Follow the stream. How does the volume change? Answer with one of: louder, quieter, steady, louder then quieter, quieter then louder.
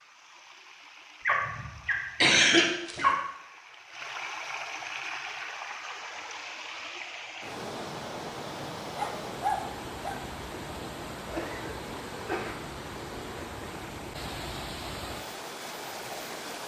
louder.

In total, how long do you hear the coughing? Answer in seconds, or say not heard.
2 s.